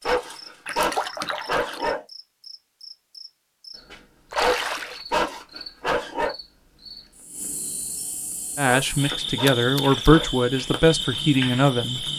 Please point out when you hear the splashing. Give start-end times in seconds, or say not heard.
0.7-1.9, 4.3-5.0, 9.4-10.1.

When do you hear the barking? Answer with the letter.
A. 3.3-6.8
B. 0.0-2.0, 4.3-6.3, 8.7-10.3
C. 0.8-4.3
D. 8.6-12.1
B.